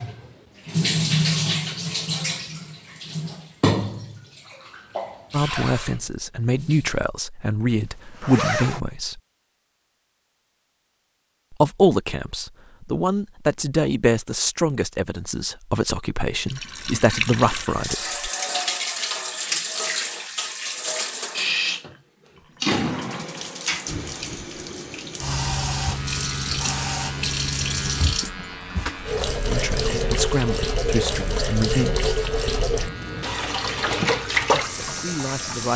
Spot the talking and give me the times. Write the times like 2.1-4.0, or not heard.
5.3-9.2, 11.5-18.3, 29.4-32.2, 34.5-35.7.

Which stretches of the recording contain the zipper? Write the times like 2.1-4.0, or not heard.
7.7-8.8.